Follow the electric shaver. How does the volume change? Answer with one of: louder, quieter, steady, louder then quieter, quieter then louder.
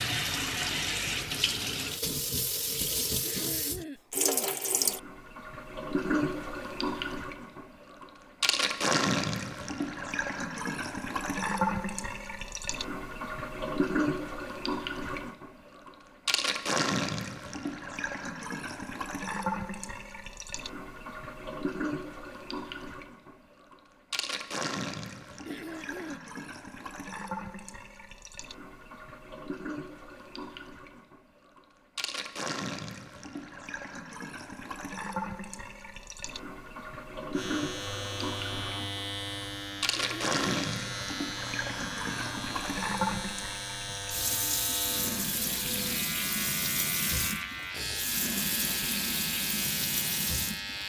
steady.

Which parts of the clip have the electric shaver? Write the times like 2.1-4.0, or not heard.
37.3-50.8.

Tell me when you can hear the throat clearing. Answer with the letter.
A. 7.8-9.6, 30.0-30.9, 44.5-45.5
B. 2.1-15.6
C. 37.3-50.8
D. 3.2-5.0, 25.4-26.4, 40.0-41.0
D.